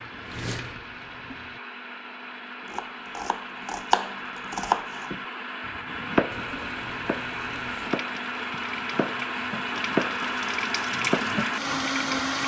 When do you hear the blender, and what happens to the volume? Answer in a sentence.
You can hear the blender from 0.0 to 12.4 s, getting louder.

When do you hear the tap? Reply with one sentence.
You can hear the tap from 0.0 to 1.6 s and from 6.3 to 12.4 s.